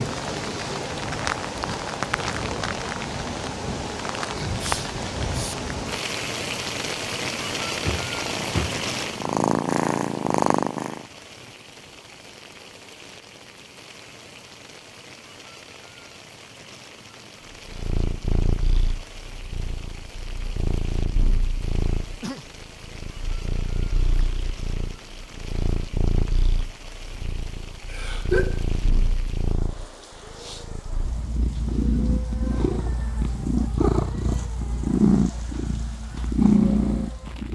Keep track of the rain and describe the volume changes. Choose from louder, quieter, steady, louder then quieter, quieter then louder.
quieter.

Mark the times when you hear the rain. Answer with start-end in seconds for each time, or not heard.
0.0-37.4.